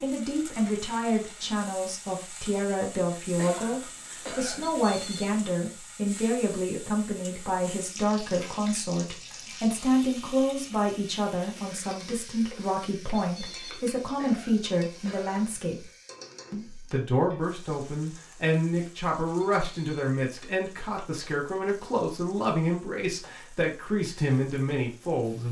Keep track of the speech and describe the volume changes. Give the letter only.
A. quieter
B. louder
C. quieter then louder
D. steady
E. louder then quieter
D.